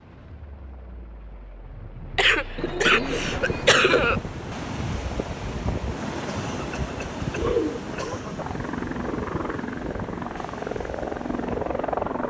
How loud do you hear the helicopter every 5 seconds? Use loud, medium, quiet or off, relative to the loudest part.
quiet, medium, loud.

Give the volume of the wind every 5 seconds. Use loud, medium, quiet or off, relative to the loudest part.
loud, loud, medium.